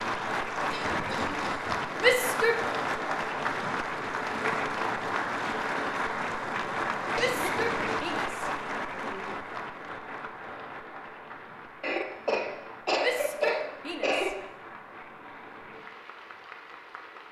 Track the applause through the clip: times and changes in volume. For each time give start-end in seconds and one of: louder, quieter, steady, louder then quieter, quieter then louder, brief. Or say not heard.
0.0-17.2 quieter.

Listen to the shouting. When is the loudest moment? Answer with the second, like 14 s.
2 s.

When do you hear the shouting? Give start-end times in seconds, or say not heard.
2.0-2.6, 7.2-9.4, 13.0-14.3.